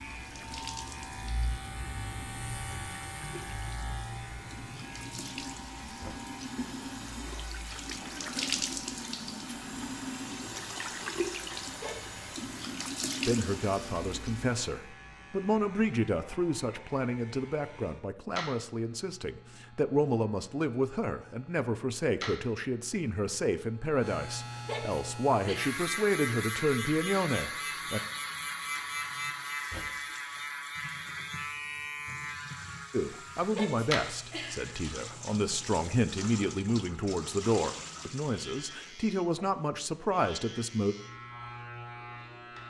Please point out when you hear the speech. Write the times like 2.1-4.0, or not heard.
13.2-28.0, 32.9-41.0.